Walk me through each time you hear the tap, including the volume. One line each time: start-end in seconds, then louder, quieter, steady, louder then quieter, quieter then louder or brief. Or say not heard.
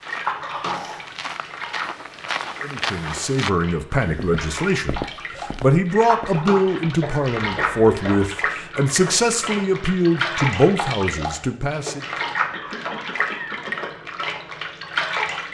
0.0-15.5 louder.